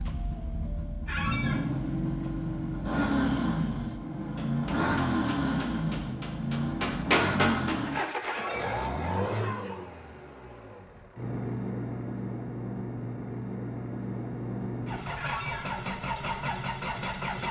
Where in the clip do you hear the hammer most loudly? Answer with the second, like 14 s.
7 s.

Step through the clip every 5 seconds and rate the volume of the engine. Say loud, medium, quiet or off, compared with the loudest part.
loud, loud, medium, loud.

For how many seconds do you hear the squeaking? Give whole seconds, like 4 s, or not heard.
2 s.